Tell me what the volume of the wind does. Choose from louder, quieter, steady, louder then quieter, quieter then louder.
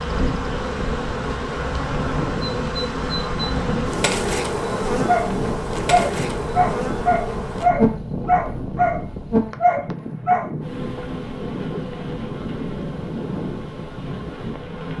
steady.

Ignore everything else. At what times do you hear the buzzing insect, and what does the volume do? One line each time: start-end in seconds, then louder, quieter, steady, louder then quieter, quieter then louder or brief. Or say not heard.
0.0-14.9 quieter.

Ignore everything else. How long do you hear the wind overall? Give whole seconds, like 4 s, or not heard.
15 s.